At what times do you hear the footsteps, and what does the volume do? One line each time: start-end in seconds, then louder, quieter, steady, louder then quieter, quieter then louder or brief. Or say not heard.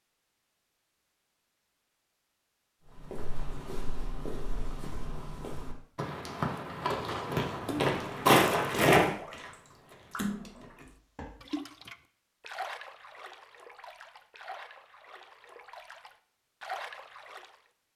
2.9-11.4 louder then quieter.